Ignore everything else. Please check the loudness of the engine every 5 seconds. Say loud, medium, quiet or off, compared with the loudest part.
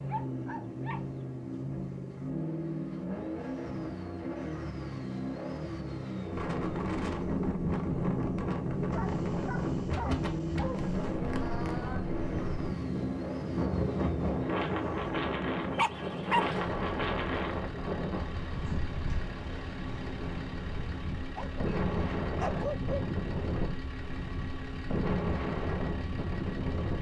loud, loud, loud, medium, medium, medium.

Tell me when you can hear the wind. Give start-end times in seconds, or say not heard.
6.3-26.9.